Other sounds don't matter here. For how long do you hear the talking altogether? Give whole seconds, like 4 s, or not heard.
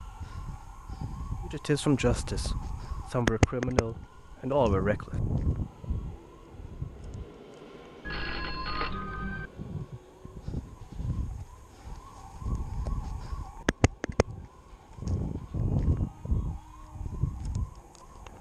4 s.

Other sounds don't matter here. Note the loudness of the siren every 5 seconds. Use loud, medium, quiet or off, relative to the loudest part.
loud, medium, medium, loud.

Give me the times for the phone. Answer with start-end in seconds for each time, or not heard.
8.0-9.5.